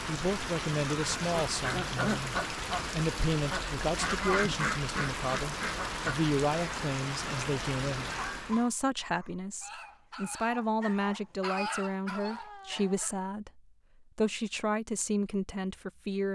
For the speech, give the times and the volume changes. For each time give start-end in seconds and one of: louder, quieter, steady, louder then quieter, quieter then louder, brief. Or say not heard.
0.1-16.2 steady.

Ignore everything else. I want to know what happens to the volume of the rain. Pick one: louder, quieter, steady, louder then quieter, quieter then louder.
steady.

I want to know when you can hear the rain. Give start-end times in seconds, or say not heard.
0.0-8.7.